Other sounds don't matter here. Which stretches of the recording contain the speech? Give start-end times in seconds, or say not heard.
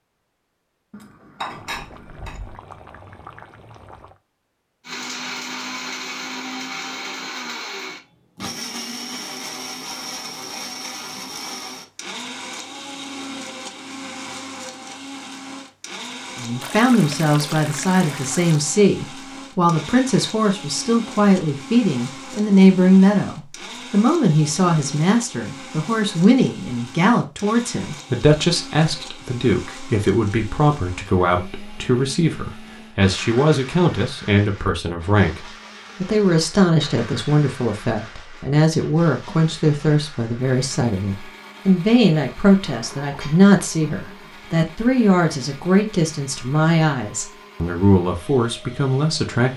16.4-49.5.